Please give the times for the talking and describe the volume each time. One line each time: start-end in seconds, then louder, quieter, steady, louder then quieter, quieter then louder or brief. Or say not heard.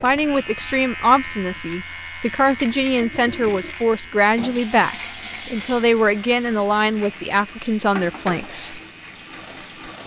0.0-8.8 steady.